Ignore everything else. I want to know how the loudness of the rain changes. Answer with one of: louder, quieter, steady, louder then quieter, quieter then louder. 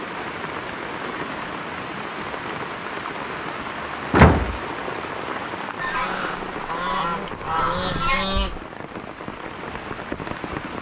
steady.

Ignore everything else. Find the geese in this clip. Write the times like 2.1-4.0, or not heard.
5.8-8.6.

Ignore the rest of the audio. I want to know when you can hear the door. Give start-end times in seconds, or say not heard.
4.1-5.2.